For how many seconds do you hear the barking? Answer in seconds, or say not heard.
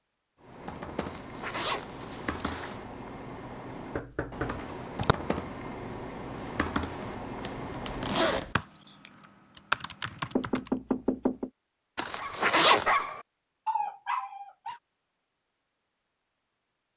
3 s.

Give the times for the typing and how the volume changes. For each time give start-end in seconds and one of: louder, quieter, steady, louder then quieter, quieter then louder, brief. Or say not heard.
0.4-10.7 louder.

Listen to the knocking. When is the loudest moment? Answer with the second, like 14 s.
11 s.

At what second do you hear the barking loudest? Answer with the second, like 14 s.
13 s.